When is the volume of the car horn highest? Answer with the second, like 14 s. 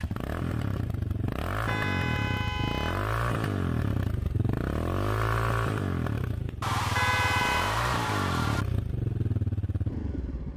7 s.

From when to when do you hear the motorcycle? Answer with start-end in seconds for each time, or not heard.
0.0-10.5.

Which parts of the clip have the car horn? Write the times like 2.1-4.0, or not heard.
1.6-3.1, 7.0-7.8.